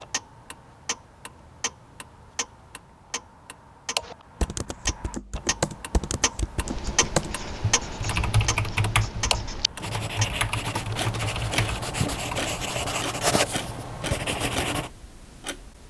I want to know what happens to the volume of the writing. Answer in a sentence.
The volume of the writing goes up.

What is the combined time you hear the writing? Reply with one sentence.
You can hear the writing for 8 seconds altogether.